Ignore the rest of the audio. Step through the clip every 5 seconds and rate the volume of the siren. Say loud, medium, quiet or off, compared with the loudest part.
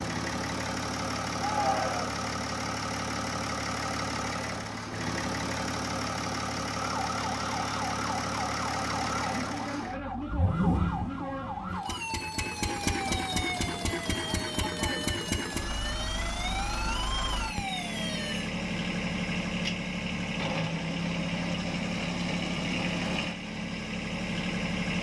off, loud, loud, loud, off.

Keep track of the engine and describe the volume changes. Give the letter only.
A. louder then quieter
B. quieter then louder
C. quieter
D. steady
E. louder
D.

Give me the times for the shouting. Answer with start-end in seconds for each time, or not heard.
1.4-2.2.